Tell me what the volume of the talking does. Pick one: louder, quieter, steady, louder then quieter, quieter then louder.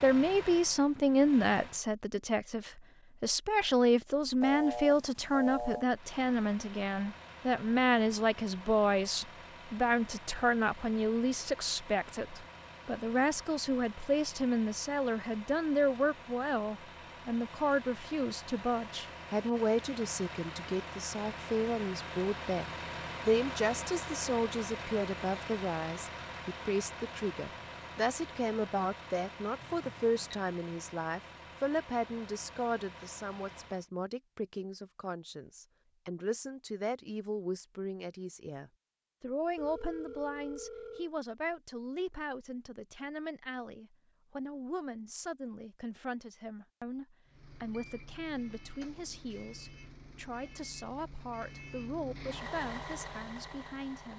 quieter.